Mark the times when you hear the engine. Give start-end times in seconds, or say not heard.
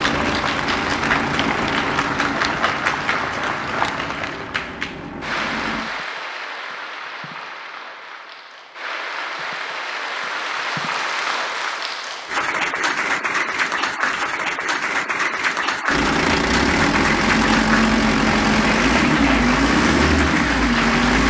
0.0-5.8, 15.8-21.2.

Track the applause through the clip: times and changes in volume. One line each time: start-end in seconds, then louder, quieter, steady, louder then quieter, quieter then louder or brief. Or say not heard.
0.0-21.2 quieter then louder.